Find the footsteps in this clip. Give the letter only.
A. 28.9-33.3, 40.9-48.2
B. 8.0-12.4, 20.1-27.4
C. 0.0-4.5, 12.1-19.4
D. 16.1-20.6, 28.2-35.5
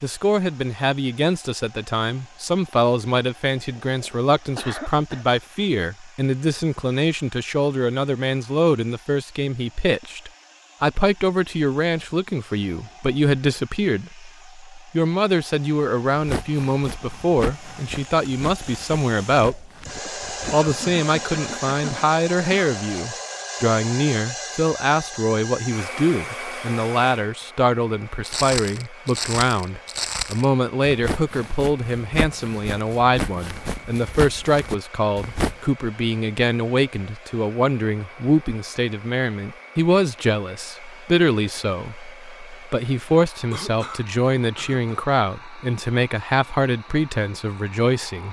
D.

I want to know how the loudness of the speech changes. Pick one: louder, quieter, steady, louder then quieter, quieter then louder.
steady.